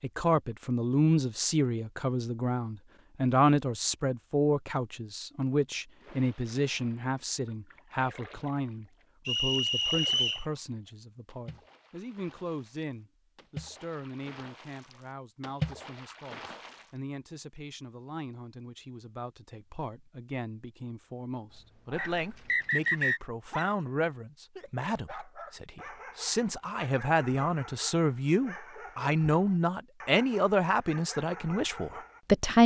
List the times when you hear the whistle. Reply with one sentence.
The whistle can be heard from 9.2 to 10.4 s and from 21.9 to 23.2 s.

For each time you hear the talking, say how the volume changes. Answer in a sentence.
The talking can be heard from 0.0 to 32.6 s, getting quieter then louder.